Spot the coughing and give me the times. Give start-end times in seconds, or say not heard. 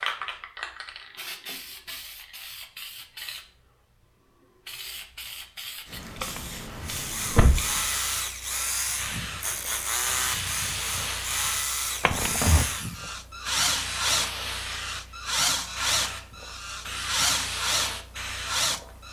not heard.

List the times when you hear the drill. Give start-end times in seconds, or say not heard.
6.8-19.0.